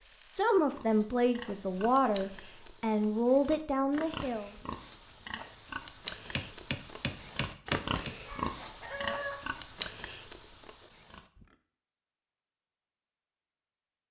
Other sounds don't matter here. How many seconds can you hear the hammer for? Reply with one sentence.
You can hear the hammer for 2 seconds altogether.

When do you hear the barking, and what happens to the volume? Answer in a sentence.
You can't hear the barking here.